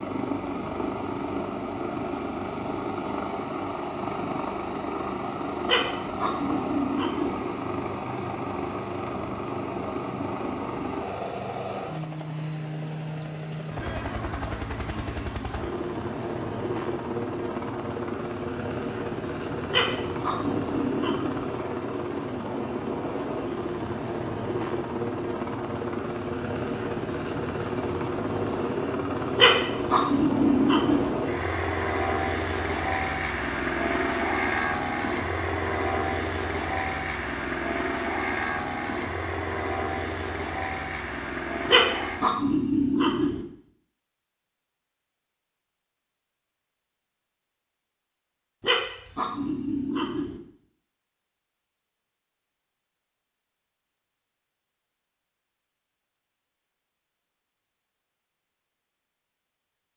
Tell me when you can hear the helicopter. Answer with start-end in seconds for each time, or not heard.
0.0-42.4.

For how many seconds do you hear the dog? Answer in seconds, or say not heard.
9 s.